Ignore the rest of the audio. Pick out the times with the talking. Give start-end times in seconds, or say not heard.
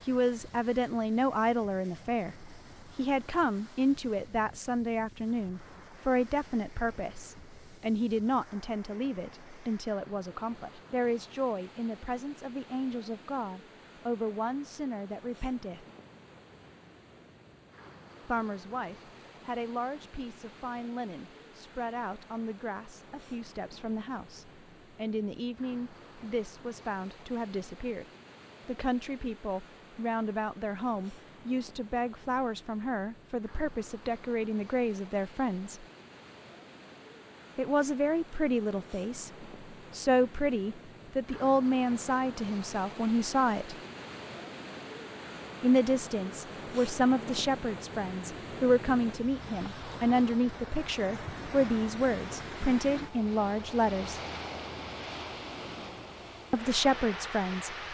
0.1-15.8, 18.2-28.1, 28.6-35.9, 37.5-43.8, 45.6-54.2, 56.5-57.8.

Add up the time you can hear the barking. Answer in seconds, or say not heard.
not heard.